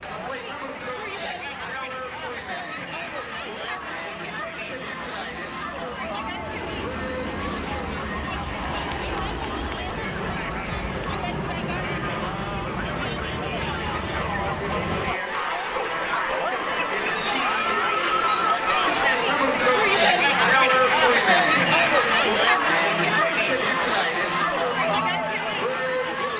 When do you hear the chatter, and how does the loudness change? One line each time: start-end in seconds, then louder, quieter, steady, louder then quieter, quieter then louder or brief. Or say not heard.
0.0-26.3 louder.